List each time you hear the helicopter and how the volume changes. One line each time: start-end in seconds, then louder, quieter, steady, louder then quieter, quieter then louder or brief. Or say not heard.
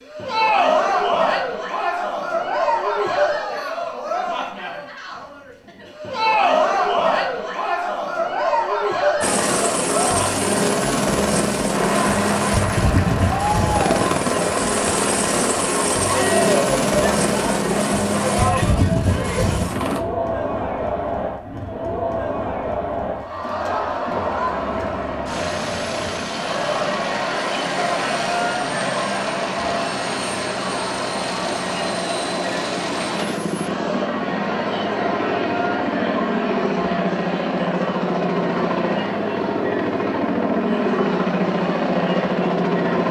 9.2-20.0 steady
24.1-43.0 louder.